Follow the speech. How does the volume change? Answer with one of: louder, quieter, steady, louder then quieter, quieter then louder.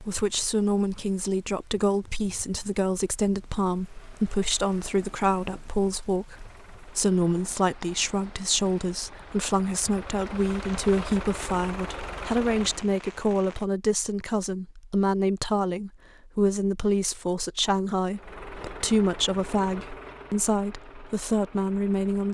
steady.